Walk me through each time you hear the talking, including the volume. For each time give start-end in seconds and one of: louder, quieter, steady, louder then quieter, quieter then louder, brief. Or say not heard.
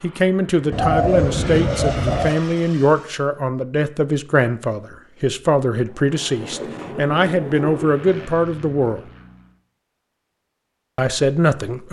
0.0-9.0 steady
10.9-11.8 brief.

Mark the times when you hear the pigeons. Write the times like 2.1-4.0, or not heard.
0.7-2.4, 6.4-8.2.